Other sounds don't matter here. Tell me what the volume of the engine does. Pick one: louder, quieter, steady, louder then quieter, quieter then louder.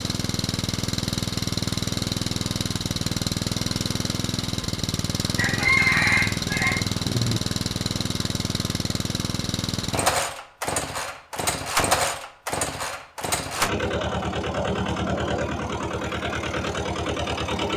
steady.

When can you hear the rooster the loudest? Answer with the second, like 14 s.
6 s.